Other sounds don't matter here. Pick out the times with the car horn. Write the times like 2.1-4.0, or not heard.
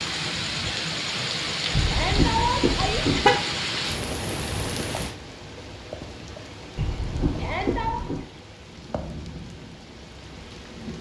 1.7-3.4, 6.8-8.2.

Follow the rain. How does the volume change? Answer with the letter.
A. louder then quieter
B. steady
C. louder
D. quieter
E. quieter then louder
D.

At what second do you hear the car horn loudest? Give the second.
3 s.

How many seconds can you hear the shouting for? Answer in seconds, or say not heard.
2 s.